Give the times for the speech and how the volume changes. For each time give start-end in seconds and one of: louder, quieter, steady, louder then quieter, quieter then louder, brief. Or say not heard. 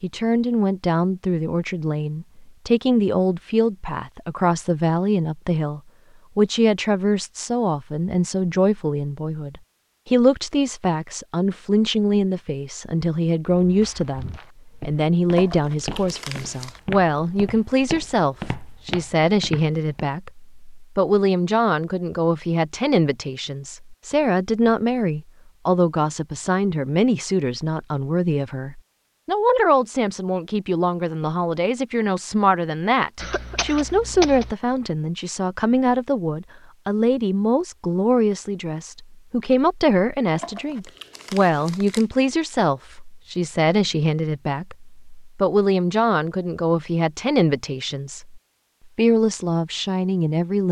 0.0-50.6 steady.